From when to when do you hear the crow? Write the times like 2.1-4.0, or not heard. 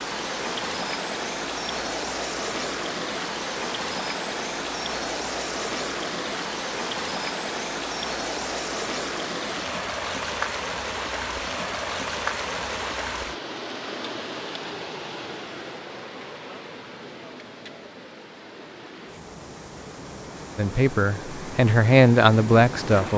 not heard.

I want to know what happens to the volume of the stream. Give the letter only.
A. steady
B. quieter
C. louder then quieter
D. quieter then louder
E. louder
B.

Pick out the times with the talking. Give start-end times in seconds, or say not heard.
20.6-23.1.